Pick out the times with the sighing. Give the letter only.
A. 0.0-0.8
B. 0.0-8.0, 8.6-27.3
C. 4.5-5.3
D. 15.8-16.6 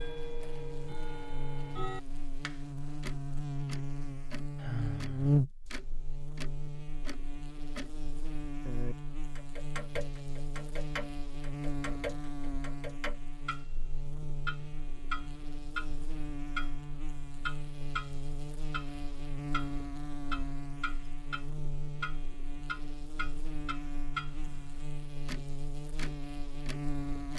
C.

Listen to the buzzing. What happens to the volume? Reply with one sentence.
The volume of the buzzing goes down.